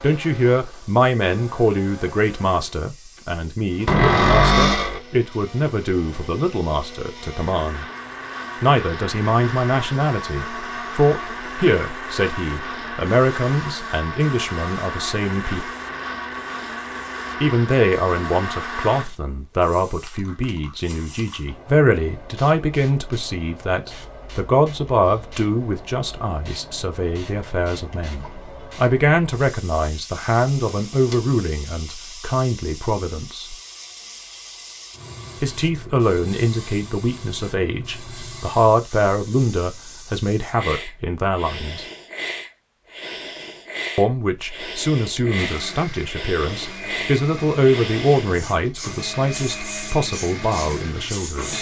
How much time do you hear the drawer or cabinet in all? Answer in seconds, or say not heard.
2 s.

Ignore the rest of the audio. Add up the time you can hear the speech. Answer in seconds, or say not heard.
45 s.